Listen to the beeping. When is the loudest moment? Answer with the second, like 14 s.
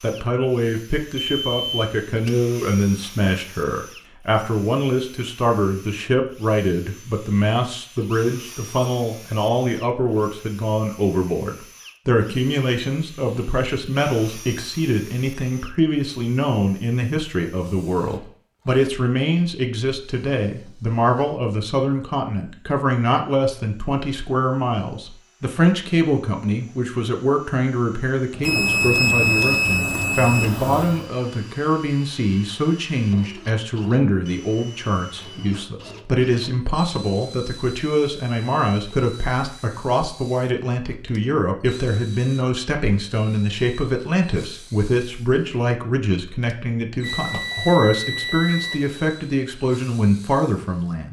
29 s.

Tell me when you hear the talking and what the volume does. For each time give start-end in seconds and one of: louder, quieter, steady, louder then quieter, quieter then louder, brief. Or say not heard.
0.0-51.0 steady.